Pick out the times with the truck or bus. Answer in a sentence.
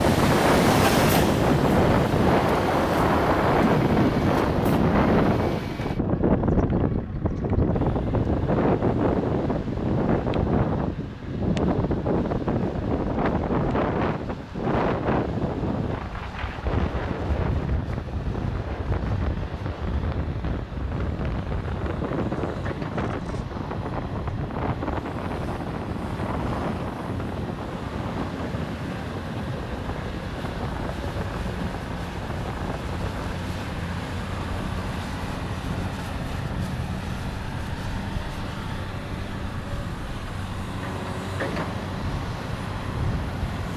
The truck or bus can be heard from 0.0 to 43.7 s.